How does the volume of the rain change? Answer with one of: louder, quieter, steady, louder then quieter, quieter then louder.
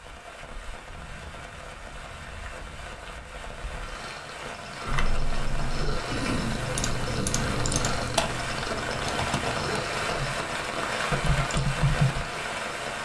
louder.